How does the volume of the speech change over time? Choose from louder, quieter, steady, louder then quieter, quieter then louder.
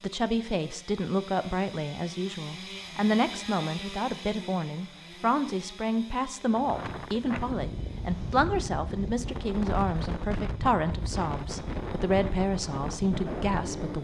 steady.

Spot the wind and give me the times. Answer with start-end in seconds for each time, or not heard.
6.5-14.0.